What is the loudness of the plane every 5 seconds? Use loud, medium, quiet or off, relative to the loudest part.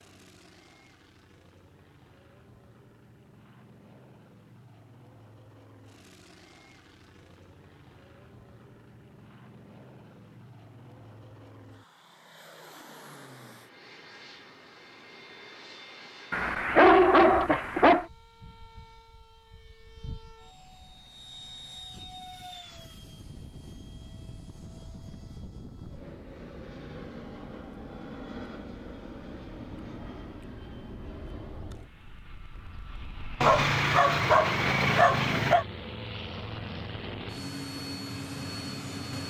quiet, quiet, quiet, quiet, medium, medium, medium, loud.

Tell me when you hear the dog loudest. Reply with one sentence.
The loudest moment of the dog is at 17 seconds.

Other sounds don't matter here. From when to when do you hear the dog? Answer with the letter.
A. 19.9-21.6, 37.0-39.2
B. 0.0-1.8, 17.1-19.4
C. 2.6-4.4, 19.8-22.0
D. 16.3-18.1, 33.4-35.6
D.